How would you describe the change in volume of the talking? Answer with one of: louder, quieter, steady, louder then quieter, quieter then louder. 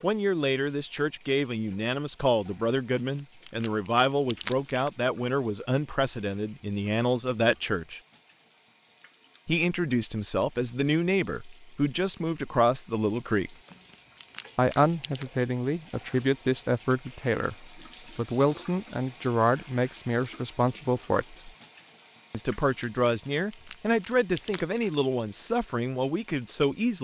steady.